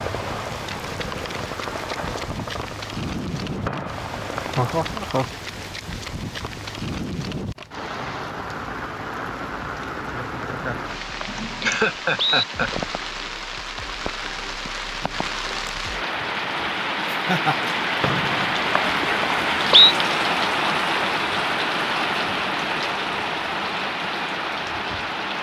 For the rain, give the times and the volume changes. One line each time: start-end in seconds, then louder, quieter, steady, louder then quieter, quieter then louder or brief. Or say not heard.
0.0-25.3 louder.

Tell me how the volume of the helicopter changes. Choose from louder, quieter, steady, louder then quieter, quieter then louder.
quieter then louder.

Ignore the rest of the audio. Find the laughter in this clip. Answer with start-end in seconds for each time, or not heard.
4.4-5.3, 11.2-12.7, 17.1-17.7.